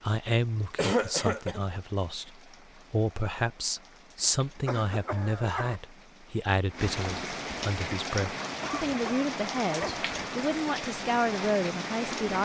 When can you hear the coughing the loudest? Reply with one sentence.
The volume of the coughing peaks at 1 second.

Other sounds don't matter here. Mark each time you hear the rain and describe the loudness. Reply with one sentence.
The rain can be heard from 0.0 to 12.3 s, getting louder.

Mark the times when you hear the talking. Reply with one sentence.
The talking can be heard from 0.0 to 12.3 s.